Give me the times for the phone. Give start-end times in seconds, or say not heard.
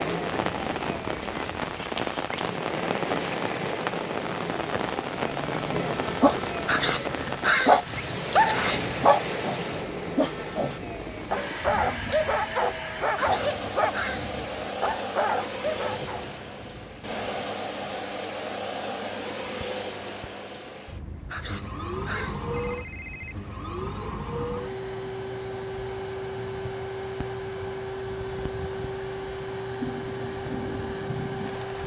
22.6-23.4.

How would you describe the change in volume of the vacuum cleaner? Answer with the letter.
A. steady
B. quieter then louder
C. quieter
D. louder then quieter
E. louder
A.